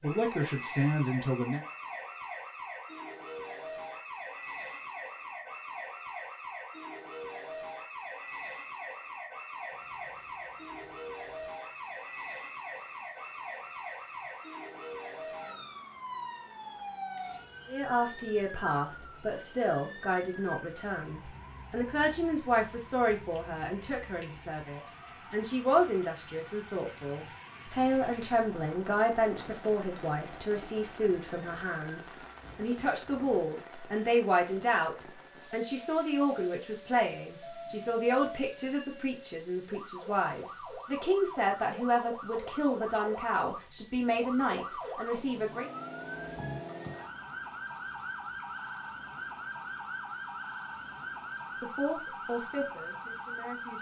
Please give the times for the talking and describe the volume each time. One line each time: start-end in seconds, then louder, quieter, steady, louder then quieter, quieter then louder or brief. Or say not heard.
0.0-1.6 brief
17.6-45.7 steady
51.6-53.7 brief.